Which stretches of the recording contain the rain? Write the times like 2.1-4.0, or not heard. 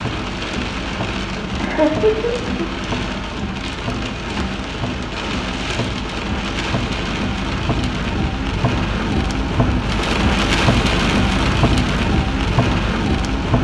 0.0-13.5.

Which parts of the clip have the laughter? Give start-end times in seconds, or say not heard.
1.6-2.7.